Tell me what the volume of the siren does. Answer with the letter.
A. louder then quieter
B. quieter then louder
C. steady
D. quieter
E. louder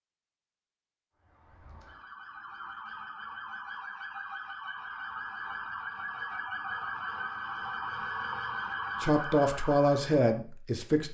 E.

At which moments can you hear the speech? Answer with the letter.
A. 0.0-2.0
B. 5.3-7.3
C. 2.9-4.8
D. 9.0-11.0
D.